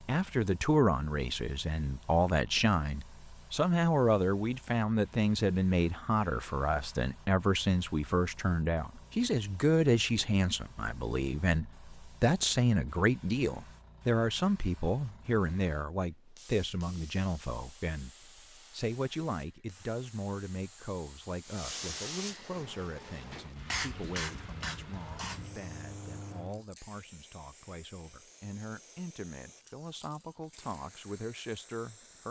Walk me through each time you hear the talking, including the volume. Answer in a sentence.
You can hear the talking from 0.0 to 32.2 s, getting quieter.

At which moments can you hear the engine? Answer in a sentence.
You can hear the engine from 22.4 to 26.6 s.